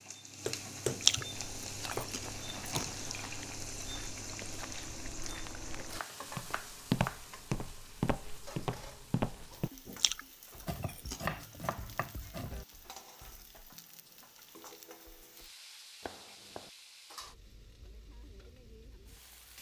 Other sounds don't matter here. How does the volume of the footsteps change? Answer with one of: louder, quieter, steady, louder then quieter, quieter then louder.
louder.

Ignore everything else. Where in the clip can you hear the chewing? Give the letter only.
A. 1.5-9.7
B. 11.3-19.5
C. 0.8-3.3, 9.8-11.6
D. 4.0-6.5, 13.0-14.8
C.